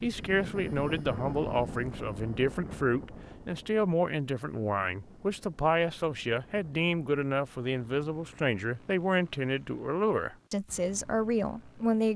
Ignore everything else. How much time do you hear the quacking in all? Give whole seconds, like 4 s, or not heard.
not heard.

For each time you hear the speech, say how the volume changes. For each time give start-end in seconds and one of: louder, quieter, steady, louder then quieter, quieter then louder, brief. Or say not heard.
0.0-12.1 steady.